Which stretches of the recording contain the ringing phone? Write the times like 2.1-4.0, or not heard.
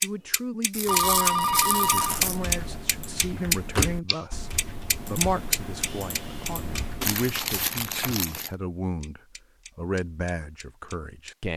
0.8-2.2.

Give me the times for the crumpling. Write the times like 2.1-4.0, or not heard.
0.7-2.4, 7.0-8.5.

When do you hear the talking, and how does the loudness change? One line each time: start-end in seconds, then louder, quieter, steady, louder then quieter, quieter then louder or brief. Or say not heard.
0.0-11.5 steady.